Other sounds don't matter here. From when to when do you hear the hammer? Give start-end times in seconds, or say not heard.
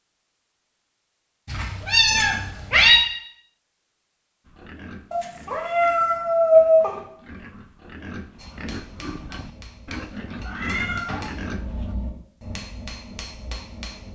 8.3-14.0.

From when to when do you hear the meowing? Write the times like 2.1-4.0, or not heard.
1.5-3.0, 5.1-7.0, 10.4-11.3.